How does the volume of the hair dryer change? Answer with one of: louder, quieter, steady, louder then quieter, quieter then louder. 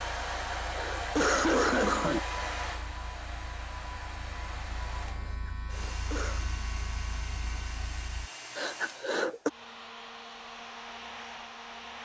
quieter.